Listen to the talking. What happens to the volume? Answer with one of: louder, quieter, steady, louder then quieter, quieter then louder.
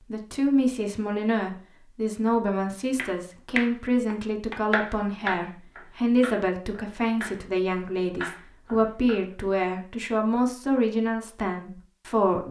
steady.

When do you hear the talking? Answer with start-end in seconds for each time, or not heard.
0.1-12.4.